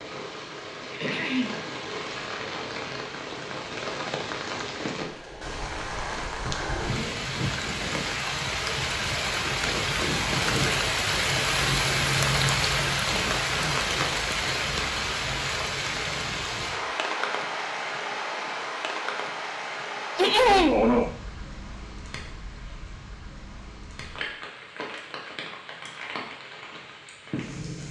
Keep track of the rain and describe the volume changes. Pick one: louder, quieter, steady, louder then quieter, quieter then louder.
louder then quieter.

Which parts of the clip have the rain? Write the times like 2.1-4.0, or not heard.
0.0-27.8.